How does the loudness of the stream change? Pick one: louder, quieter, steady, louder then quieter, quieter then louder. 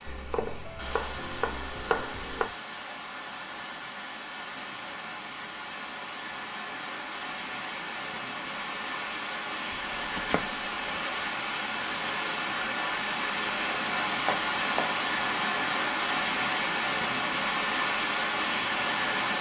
louder.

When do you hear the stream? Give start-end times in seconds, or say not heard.
0.0-19.3.